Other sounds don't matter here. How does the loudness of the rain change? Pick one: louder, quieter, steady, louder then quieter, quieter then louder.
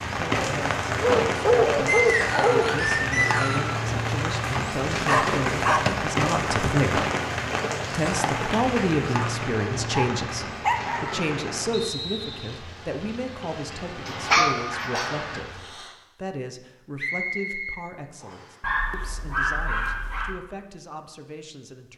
quieter.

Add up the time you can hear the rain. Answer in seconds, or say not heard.
16 s.